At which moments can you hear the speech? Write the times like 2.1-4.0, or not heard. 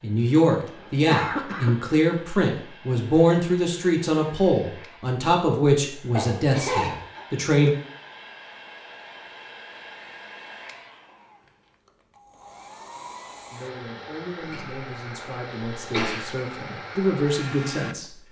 0.0-7.8, 13.5-18.1.